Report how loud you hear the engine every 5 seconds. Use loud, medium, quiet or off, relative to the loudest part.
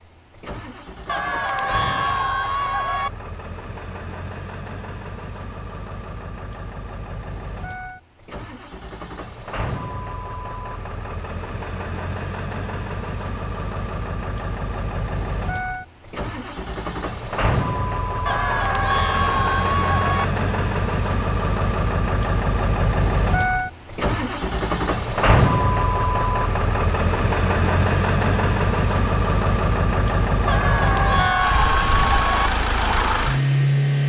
quiet, quiet, medium, medium, loud, loud, loud.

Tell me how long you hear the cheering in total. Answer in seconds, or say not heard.
6 s.